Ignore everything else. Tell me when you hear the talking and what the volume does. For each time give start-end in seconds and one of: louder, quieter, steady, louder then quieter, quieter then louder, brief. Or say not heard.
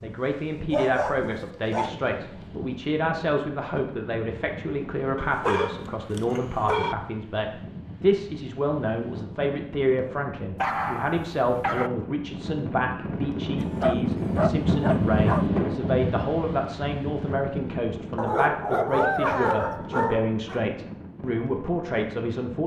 0.0-22.6 steady.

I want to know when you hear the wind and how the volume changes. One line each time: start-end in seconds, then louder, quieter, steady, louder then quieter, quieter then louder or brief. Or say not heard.
0.0-22.6 louder then quieter.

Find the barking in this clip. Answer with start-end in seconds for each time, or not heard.
0.7-2.0, 5.2-7.0, 10.6-11.9, 13.6-15.4, 18.1-20.6.